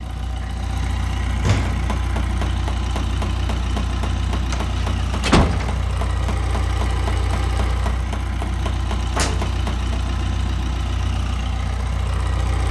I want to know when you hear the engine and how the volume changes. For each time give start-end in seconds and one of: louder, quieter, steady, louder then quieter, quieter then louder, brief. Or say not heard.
0.0-12.6 steady.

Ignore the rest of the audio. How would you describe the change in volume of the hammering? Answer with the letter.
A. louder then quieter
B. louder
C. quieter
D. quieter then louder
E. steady
E.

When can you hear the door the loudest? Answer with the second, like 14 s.
5 s.